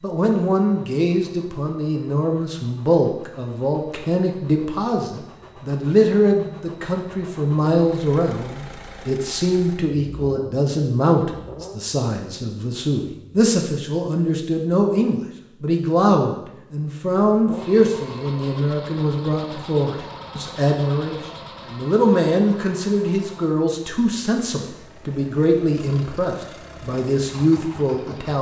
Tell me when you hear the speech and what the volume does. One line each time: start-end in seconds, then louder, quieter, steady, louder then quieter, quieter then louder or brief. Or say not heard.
0.0-28.3 steady.